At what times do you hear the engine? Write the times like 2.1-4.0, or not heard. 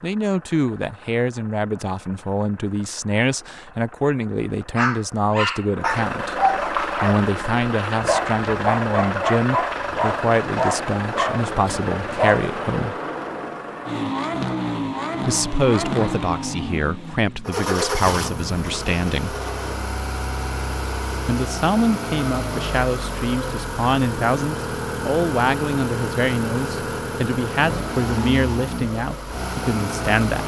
0.0-30.4.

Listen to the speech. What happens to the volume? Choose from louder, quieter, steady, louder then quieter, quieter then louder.
steady.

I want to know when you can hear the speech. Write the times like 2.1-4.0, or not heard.
0.0-12.9, 15.2-19.4, 21.2-30.4.